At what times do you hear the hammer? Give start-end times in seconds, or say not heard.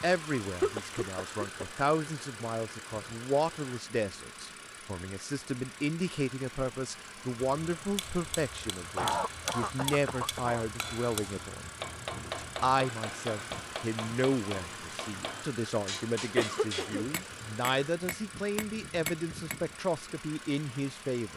8.0-19.8.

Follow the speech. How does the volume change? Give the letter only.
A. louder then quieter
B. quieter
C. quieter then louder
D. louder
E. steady
E.